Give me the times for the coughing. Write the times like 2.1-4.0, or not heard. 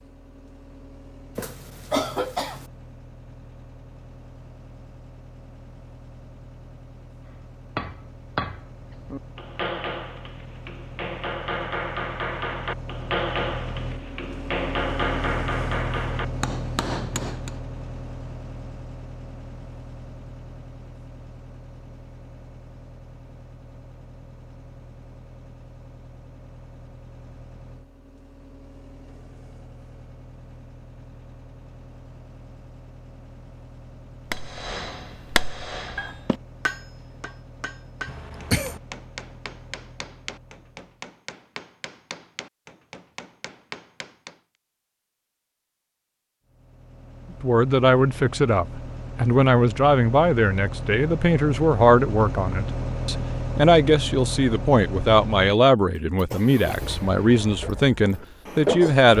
1.4-2.6, 38.0-38.8.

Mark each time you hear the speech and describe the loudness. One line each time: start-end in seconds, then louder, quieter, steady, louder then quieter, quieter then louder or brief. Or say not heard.
47.4-59.1 steady.